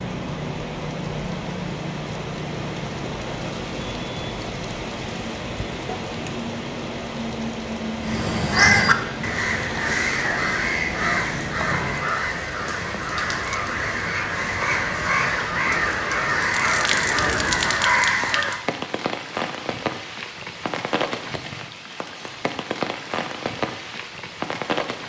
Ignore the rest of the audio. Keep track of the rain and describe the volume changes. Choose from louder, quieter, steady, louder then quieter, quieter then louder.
steady.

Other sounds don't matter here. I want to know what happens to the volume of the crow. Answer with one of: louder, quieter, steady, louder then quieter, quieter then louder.
quieter then louder.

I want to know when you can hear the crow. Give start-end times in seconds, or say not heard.
8.0-18.6.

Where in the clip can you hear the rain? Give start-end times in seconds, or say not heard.
0.0-25.0.